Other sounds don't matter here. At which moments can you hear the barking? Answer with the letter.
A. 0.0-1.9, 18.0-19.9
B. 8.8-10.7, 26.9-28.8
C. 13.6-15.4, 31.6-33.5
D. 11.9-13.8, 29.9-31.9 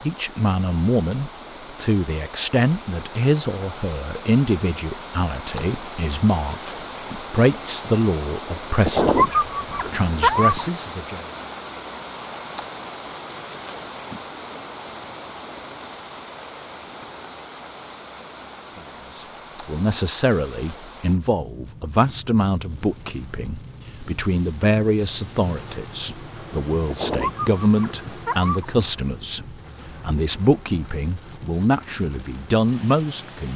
B.